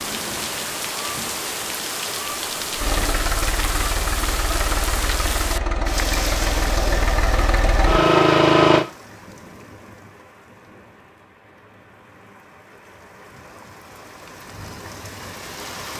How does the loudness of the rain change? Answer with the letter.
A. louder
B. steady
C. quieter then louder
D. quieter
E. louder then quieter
C.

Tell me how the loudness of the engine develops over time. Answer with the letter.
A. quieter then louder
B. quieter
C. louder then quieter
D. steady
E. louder
E.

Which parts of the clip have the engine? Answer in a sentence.
You can hear the engine from 2.8 to 8.8 s.